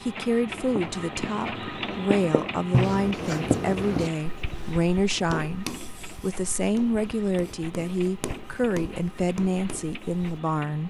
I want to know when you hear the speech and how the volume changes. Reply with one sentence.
The speech can be heard from 0.0 to 10.8 s, at a steady volume.